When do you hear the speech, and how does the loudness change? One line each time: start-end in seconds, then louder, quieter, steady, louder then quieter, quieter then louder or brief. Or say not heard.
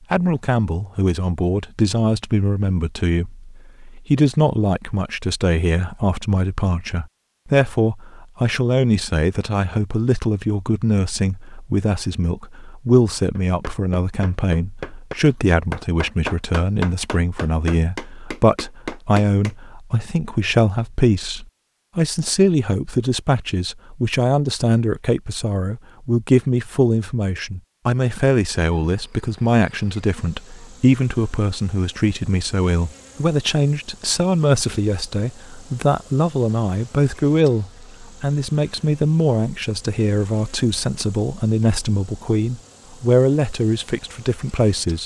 0.1-45.0 steady.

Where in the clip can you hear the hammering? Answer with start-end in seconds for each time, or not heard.
13.3-19.6.